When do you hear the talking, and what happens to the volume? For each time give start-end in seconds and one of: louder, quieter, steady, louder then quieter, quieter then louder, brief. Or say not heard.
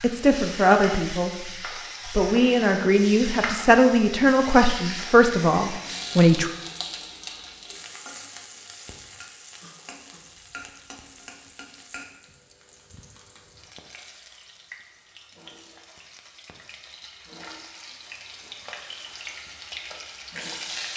0.0-6.5 steady.